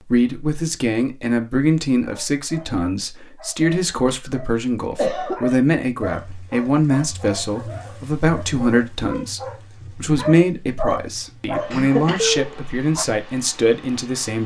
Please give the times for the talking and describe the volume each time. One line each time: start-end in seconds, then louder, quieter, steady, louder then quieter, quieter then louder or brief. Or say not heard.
0.1-14.4 steady.